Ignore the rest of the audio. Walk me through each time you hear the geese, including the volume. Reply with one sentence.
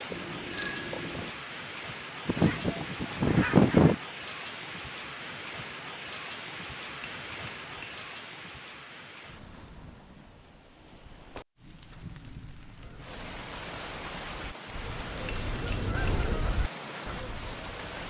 You can hear the geese briefly from 2.2 to 4.0 s; and from 12.8 to 18.0 s, getting louder then quieter.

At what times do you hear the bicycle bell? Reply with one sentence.
You can hear the bicycle bell from 0.1 to 1.3 s, from 7.0 to 8.1 s and from 15.2 to 16.1 s.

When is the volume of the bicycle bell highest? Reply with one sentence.
The loudest moment of the bicycle bell is at 1 second.